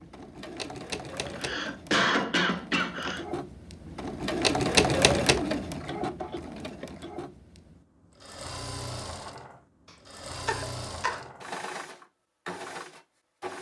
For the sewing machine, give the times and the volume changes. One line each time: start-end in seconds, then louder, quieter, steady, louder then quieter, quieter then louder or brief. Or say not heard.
0.0-13.5 louder then quieter.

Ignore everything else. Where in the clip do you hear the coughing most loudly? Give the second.
2 s.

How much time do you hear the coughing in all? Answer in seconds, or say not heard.
3 s.